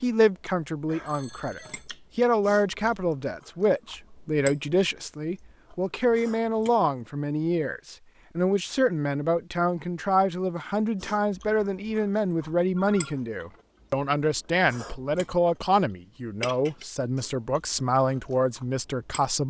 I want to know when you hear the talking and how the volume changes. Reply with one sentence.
You can hear the talking from 0.0 to 19.4 s, at a steady volume.